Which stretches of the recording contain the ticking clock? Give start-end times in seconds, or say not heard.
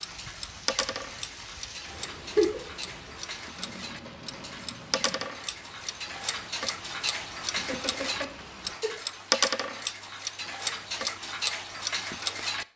0.0-12.7.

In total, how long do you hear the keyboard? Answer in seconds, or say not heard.
2 s.